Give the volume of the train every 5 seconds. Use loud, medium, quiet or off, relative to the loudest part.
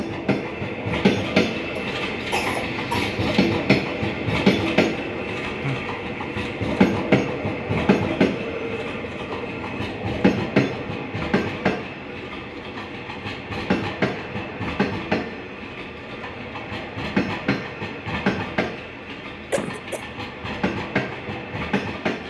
loud, loud, loud, medium, medium.